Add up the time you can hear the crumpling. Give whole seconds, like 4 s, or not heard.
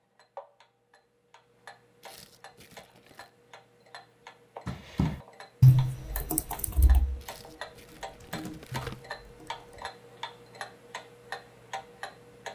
3 s.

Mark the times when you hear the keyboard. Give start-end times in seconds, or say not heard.
4.7-9.8.